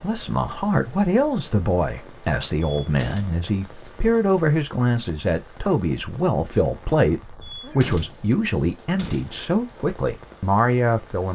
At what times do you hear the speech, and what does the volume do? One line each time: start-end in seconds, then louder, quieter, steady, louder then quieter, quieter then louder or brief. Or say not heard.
0.0-11.2 steady.